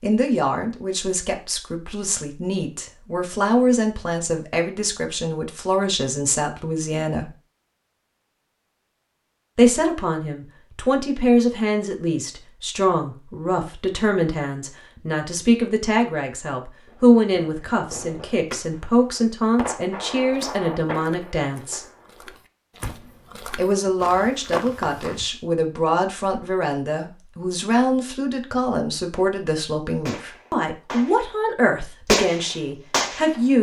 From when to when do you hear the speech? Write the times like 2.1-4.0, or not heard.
0.0-7.3, 9.6-21.8, 23.6-33.5.